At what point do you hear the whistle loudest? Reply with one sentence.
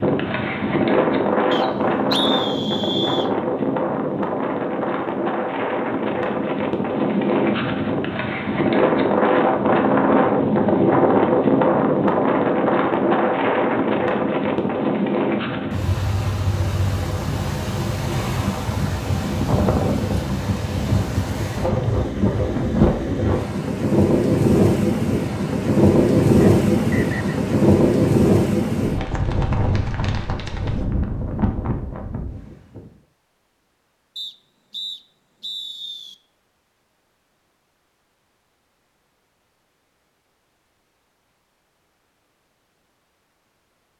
The volume of the whistle peaks at 2 seconds.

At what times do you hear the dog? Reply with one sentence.
The dog can't be heard in this clip.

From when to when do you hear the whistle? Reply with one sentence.
The whistle can be heard from 1.5 to 3.3 s, from 26.4 to 27.4 s and from 34.1 to 36.1 s.